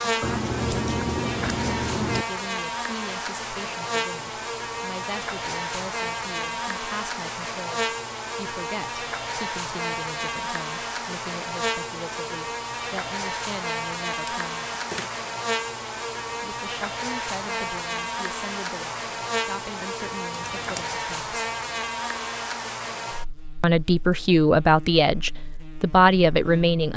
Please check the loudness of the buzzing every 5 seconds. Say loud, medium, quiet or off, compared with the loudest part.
loud, loud, loud, loud, loud, quiet.